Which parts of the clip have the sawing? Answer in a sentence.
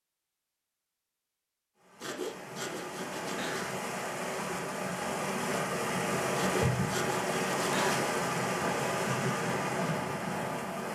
You can hear the sawing from 2.0 to 3.8 s and from 6.3 to 8.1 s.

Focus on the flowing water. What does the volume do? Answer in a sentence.
The volume of the flowing water goes up.